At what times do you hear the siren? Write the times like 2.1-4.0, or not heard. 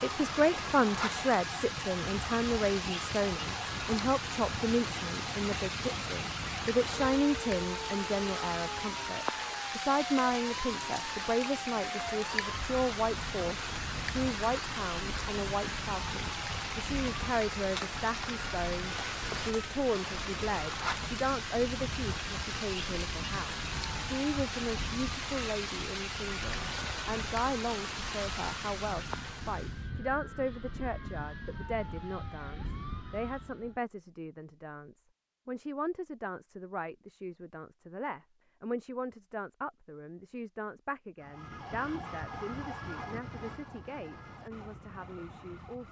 0.0-33.8, 41.2-45.8.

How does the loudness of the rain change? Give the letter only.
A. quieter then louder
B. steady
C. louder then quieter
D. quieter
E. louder
B.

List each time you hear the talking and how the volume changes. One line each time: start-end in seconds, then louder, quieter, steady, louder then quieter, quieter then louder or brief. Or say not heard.
0.0-45.8 quieter.